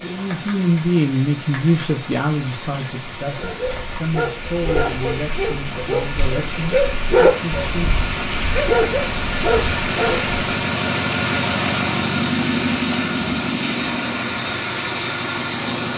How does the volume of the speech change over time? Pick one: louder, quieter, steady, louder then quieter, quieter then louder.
quieter.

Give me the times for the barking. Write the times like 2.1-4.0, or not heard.
3.3-10.3.